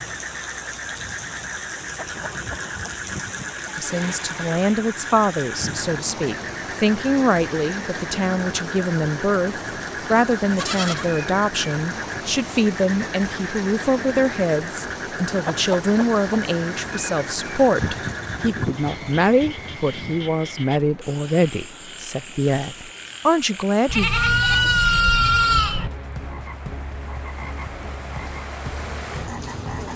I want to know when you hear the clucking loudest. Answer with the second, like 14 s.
16 s.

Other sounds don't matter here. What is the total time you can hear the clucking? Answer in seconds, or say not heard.
2 s.